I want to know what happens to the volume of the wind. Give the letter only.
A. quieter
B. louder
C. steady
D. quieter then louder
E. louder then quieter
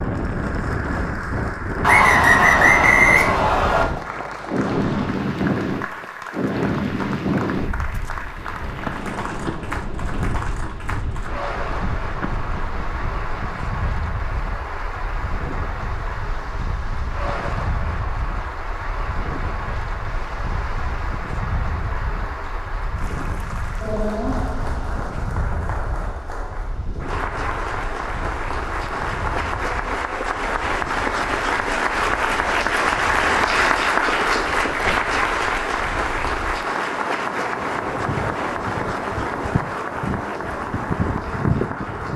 D.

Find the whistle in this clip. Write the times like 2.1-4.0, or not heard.
1.8-3.9.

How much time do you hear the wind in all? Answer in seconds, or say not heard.
42 s.